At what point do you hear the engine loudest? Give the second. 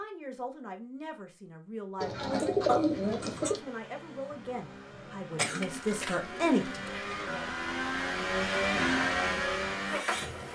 9 s.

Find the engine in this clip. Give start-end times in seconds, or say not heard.
2.9-10.5.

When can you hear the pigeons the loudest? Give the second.
3 s.